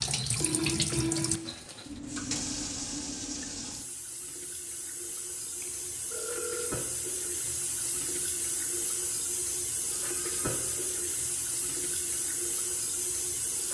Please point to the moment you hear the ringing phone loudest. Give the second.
1 s.